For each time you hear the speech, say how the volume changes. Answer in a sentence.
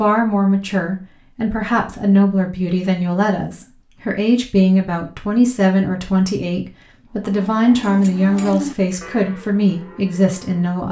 The speech can be heard from 0.0 to 10.8 s, at a steady volume.